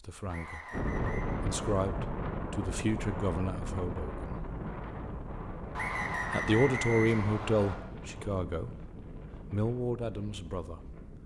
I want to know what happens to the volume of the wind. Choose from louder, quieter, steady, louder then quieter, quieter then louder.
quieter.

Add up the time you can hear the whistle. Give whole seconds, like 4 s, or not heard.
3 s.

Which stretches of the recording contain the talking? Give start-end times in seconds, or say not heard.
0.0-0.7, 1.4-4.5, 6.3-8.8, 9.5-10.8.